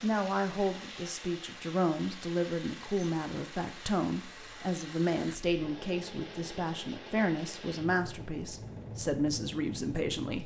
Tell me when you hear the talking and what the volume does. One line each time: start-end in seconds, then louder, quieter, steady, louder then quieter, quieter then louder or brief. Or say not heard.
0.0-10.4 steady.